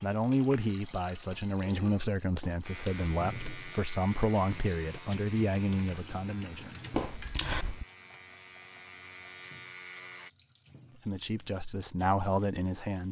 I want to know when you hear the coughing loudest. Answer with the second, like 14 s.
7 s.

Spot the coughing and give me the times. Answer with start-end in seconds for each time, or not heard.
2.4-3.2, 6.9-7.8.